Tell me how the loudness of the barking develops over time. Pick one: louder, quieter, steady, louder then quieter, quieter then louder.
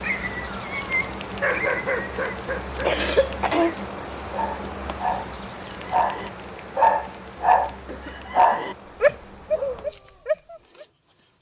louder.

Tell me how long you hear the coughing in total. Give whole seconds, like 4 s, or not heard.
2 s.